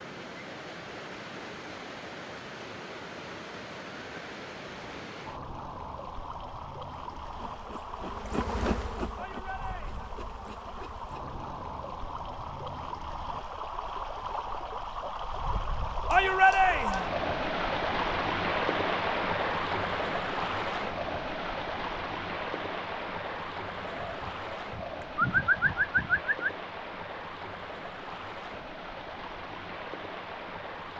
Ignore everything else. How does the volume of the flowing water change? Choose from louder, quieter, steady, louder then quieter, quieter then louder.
louder then quieter.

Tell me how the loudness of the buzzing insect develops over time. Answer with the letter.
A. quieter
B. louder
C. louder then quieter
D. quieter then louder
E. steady
C.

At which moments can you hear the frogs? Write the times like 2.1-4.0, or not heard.
not heard.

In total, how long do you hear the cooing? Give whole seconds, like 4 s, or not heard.
3 s.